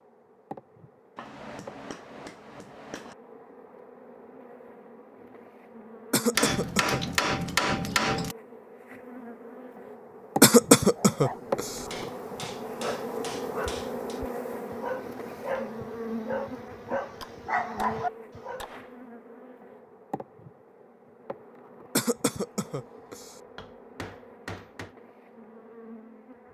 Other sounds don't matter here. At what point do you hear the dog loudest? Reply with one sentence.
The loudest moment of the dog is at 18 seconds.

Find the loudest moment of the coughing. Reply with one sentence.
The volume of the coughing peaks at 11 seconds.